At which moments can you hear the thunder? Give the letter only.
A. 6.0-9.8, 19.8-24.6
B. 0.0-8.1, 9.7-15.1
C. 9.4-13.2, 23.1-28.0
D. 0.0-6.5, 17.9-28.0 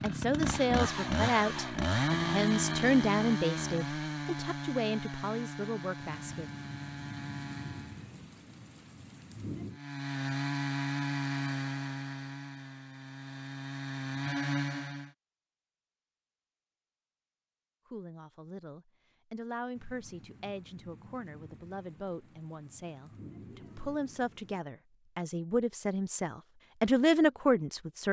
A.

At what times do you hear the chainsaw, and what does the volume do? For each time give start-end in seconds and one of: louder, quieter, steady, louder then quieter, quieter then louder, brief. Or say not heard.
0.0-8.1 quieter
9.7-15.1 quieter then louder.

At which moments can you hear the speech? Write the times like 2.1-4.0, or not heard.
0.0-6.5, 17.9-28.0.